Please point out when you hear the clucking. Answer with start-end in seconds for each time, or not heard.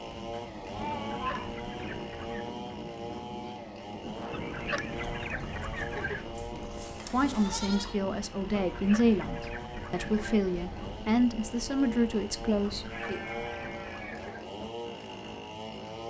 0.9-2.5, 4.3-6.3, 8.6-10.4, 12.7-14.4.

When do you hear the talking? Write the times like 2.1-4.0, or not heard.
7.1-13.2.